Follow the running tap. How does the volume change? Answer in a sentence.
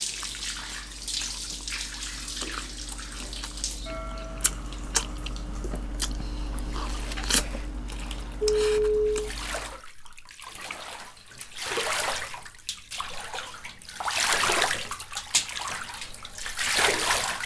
The volume of the running tap goes down, then up.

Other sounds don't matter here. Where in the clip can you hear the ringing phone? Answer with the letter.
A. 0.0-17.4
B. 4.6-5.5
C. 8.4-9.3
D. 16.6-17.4
C.